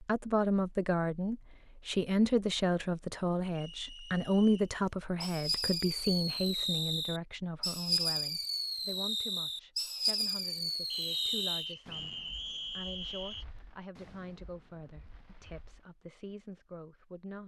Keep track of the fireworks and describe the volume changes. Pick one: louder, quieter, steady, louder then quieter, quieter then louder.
quieter.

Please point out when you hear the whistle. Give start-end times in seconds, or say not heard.
3.5-4.8, 10.9-13.4.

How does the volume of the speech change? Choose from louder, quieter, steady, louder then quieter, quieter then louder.
quieter.